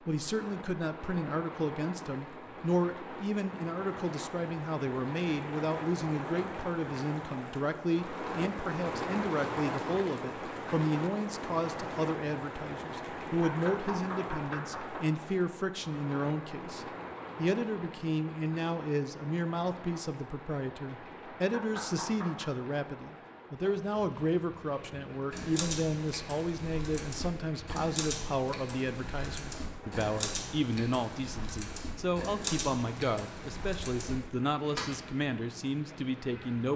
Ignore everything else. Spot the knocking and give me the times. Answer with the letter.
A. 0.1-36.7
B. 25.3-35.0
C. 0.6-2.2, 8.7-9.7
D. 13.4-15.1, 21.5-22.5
D.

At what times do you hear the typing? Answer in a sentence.
You can hear the typing from 25.3 to 35.0 s.